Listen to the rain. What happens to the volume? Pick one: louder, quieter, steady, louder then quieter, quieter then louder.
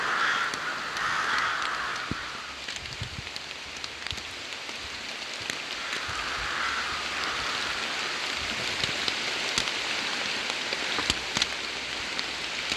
louder.